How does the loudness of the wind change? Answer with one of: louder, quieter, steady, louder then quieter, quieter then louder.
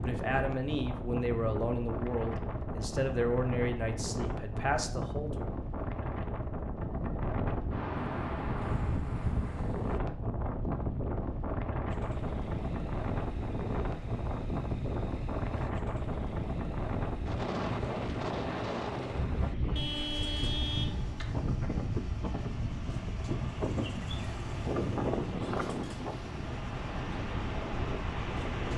steady.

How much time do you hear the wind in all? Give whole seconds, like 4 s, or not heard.
29 s.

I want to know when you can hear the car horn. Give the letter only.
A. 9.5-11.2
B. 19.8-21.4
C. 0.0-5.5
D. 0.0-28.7
B.